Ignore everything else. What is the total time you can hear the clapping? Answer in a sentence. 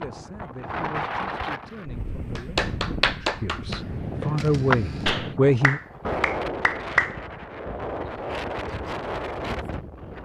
You can hear the clapping for 5 seconds altogether.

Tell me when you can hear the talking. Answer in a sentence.
You can hear the talking from 0.0 to 5.8 s.